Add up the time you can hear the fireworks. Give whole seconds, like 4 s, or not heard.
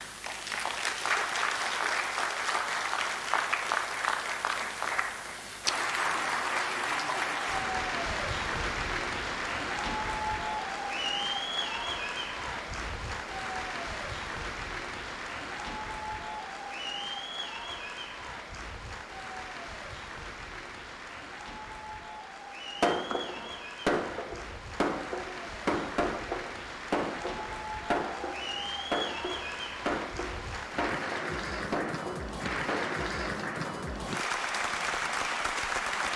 10 s.